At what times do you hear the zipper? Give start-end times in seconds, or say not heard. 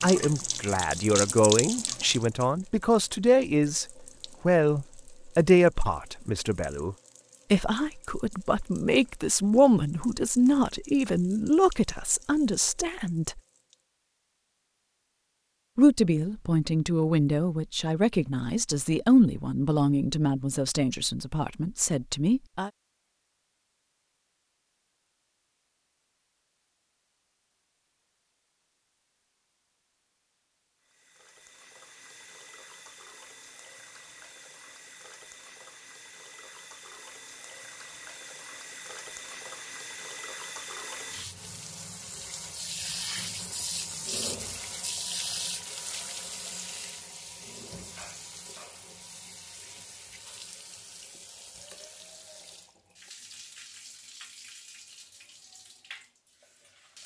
not heard.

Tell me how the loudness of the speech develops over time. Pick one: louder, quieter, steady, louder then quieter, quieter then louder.
steady.